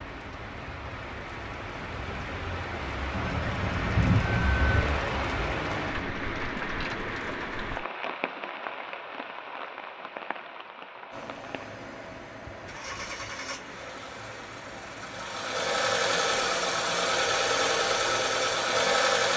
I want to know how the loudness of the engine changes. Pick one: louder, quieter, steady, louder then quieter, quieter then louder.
louder.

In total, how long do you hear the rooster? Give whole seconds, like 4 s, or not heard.
2 s.